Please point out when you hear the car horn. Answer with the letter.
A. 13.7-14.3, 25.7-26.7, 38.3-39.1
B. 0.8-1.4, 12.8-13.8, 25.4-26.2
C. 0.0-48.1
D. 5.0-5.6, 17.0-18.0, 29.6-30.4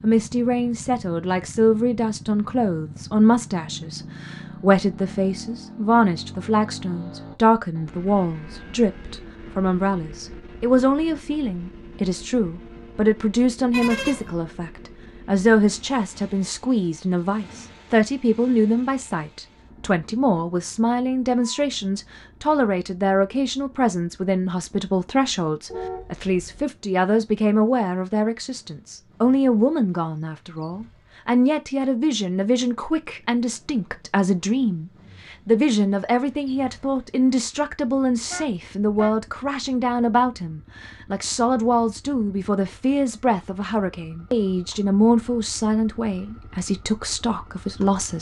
A.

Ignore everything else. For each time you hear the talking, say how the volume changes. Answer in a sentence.
You can hear the talking from 0.0 to 48.1 s, at a steady volume.